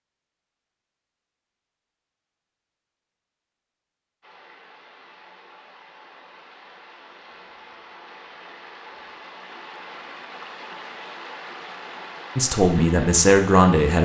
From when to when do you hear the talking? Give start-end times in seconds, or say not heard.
12.3-14.0.